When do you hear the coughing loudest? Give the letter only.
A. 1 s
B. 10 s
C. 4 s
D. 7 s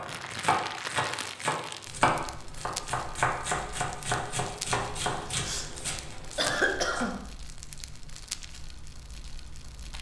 D.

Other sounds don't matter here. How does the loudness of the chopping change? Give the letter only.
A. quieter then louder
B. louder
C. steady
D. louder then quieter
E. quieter
E.